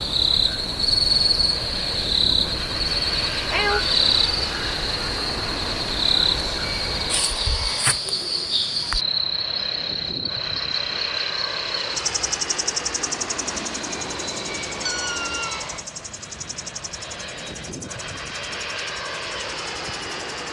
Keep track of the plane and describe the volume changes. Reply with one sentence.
The loudness of the plane stays about the same.